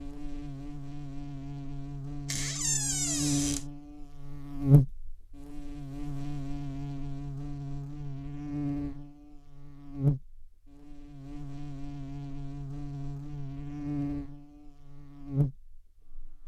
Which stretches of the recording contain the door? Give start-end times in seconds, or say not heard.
2.2-3.6.